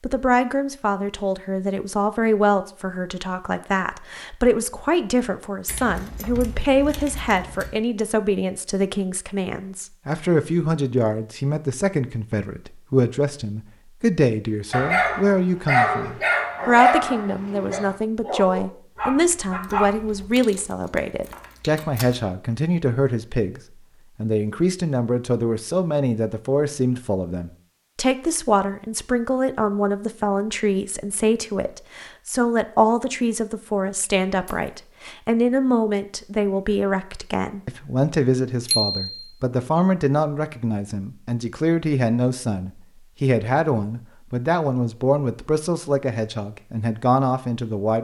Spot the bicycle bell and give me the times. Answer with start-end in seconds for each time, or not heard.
38.6-39.3.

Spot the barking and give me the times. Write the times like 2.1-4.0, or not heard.
14.7-20.2.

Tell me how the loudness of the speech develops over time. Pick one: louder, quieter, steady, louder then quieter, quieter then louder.
steady.